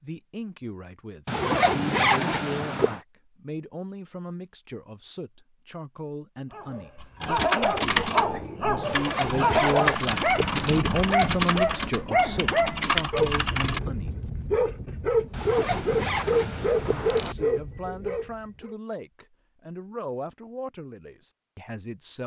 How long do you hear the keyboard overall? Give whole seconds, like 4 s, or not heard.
7 s.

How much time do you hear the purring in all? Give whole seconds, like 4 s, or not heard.
not heard.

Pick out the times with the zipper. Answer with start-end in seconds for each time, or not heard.
1.2-3.0, 8.8-10.8, 15.3-17.4.